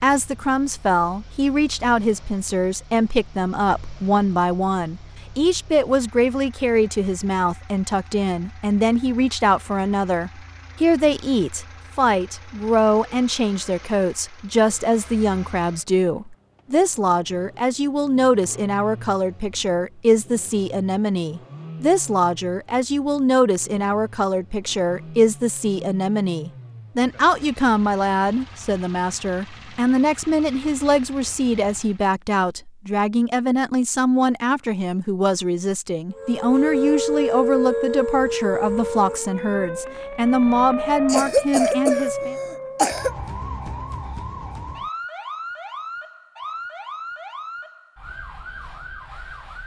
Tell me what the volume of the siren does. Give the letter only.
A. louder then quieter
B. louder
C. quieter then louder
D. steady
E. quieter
E.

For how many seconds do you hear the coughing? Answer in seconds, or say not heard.
2 s.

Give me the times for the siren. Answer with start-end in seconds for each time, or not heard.
36.1-49.6.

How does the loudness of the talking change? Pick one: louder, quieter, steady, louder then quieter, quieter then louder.
steady.